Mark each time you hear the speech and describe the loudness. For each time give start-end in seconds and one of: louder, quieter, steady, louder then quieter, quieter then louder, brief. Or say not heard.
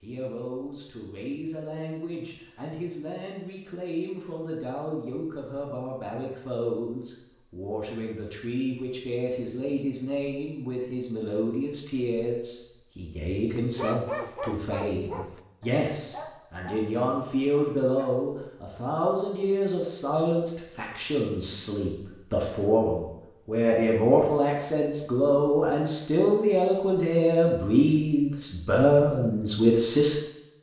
0.0-30.1 louder.